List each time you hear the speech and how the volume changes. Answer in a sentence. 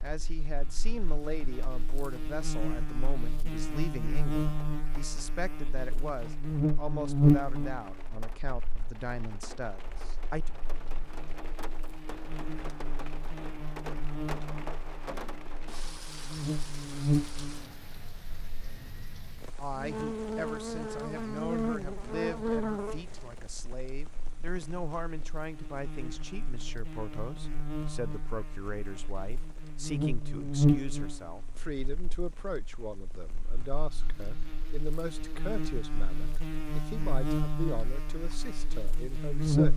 You can hear the speech from 0.0 to 10.5 s, at a steady volume; and from 19.6 to 39.7 s, at a steady volume.